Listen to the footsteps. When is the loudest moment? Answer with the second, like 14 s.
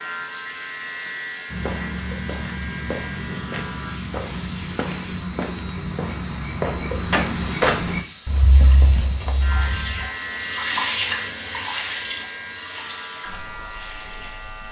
8 s.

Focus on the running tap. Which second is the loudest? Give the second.
11 s.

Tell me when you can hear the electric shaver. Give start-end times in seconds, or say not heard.
0.0-14.6.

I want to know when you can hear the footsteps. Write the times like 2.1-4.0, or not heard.
1.4-10.1.